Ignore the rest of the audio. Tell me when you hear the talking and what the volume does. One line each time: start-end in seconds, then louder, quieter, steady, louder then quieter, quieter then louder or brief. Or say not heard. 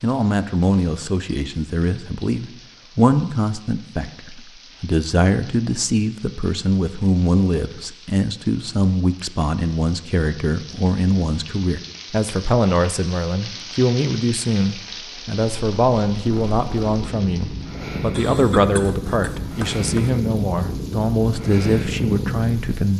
0.0-22.9 steady.